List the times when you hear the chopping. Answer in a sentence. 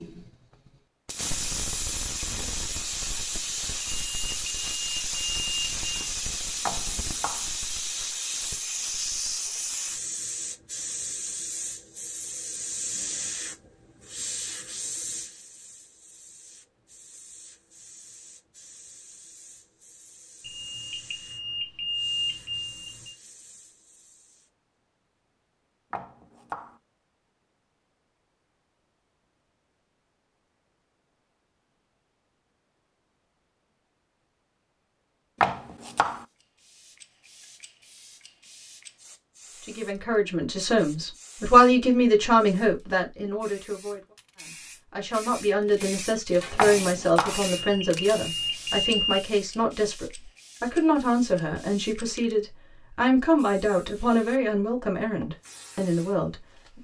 You can hear the chopping from 6.7 to 7.5 s, from 25.9 to 26.8 s, from 35.4 to 36.2 s and from 46.5 to 47.5 s.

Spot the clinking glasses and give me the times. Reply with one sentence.
You can't hear the clinking glasses here.